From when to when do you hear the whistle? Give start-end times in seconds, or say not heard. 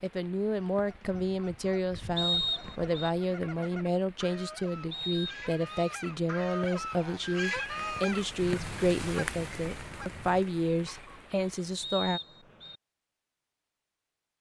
2.1-3.1, 4.9-5.8, 11.8-12.8.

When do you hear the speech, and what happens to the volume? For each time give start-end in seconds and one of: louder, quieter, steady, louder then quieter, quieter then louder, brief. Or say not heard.
0.0-12.2 steady.